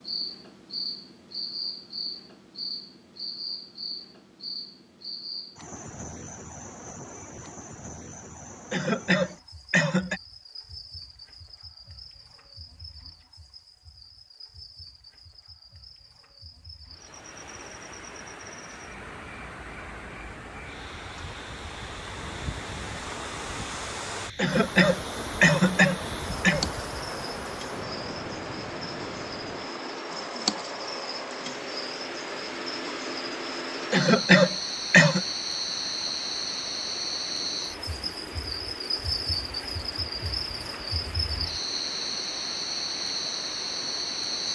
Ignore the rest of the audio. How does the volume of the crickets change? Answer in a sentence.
The loudness of the crickets goes down, then up.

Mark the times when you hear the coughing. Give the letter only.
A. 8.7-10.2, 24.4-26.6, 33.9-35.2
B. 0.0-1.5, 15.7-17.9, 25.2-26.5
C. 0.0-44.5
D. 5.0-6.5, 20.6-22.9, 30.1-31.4
A.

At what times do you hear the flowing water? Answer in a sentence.
The flowing water can be heard from 16.9 to 44.5 s.